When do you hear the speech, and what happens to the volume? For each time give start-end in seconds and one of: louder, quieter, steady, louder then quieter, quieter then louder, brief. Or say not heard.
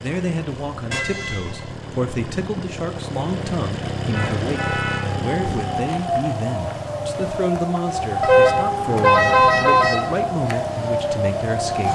0.0-11.9 steady.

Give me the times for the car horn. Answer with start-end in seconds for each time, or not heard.
0.9-2.1, 4.1-5.7, 8.2-10.2.